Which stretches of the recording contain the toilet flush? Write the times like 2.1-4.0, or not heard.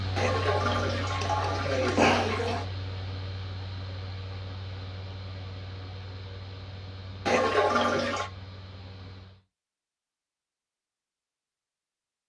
0.1-2.6, 7.2-8.3.